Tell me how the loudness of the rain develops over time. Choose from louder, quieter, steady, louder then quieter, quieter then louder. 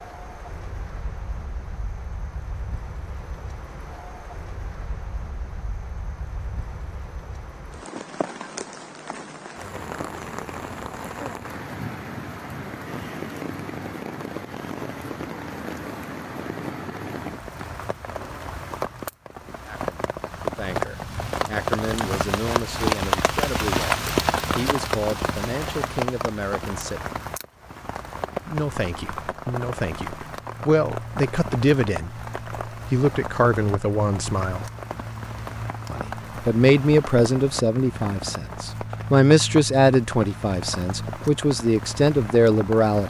louder then quieter.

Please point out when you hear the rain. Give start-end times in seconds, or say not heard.
0.0-43.0.